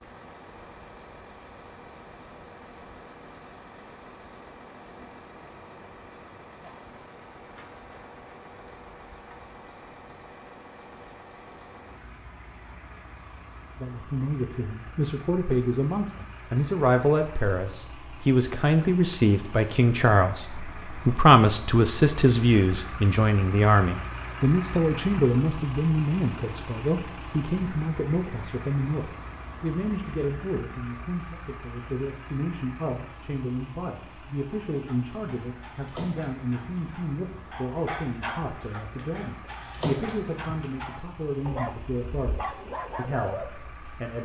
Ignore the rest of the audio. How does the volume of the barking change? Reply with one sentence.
The loudness of the barking goes up.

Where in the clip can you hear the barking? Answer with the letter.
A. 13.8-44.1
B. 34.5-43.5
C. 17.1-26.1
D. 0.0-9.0
B.